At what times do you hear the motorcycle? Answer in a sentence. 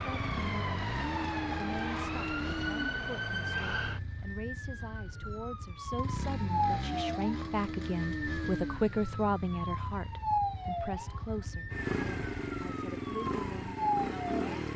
The motorcycle can be heard from 0.0 to 14.7 s.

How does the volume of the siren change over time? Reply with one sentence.
The volume of the siren stays about the same.